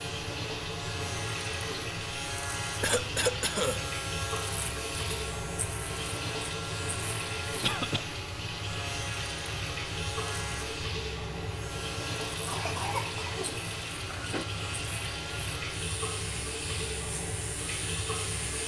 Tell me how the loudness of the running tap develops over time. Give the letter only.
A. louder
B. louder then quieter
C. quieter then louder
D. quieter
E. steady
E.